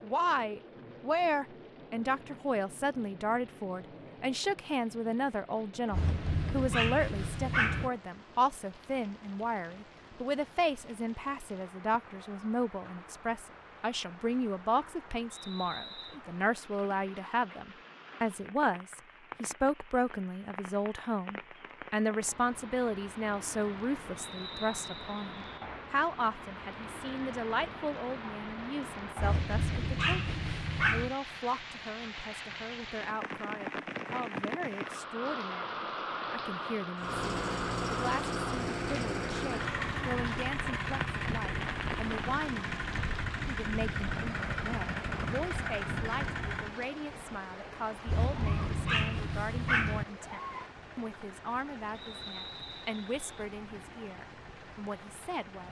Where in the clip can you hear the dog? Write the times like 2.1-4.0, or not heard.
5.9-7.9, 29.1-31.1, 48.0-50.0.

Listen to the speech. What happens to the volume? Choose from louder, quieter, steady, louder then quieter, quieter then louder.
quieter.